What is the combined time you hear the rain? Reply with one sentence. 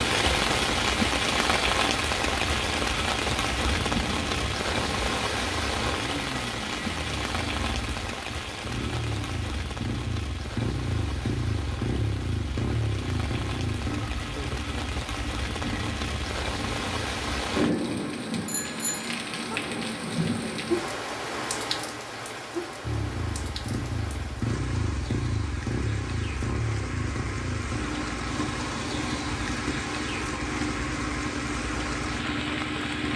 You can hear the rain for 33 seconds altogether.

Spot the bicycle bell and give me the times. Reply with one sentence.
The bicycle bell can be heard from 18.4 to 19.6 s.